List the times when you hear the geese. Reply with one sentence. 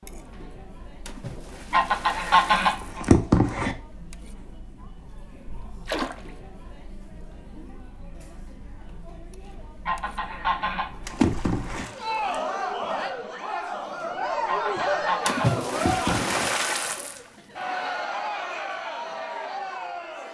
The geese can be heard from 1.7 to 3.8 s, from 9.8 to 11.8 s and from 14.4 to 16.5 s.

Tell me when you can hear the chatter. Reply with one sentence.
You can hear the chatter from 0.0 to 20.2 s.